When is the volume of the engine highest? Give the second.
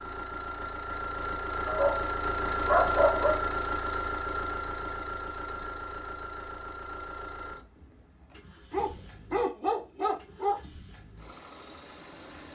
3 s.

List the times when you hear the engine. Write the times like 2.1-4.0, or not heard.
0.0-12.4.